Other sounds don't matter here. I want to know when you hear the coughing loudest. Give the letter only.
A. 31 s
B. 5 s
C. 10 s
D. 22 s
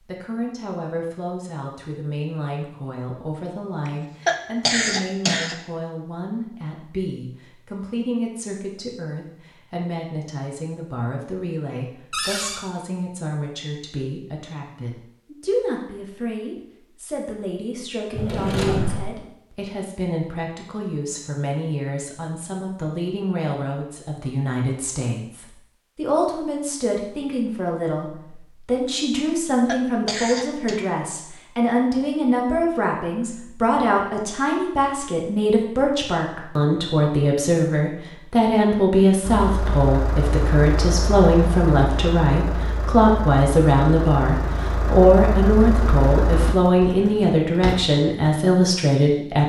B.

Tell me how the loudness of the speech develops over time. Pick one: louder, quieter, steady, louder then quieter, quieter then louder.
louder.